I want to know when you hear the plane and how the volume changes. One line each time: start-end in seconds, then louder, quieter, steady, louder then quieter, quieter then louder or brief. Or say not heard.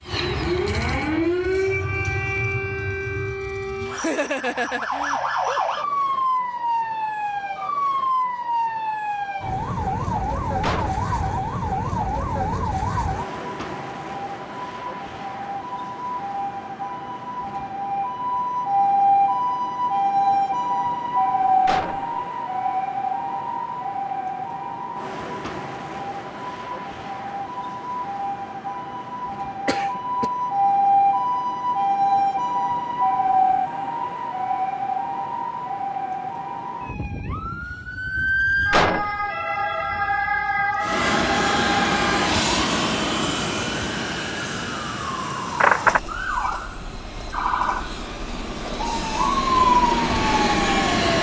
40.8-51.1 quieter then louder.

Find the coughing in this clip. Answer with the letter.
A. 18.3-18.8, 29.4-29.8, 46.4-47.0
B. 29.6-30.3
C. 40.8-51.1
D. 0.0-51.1
B.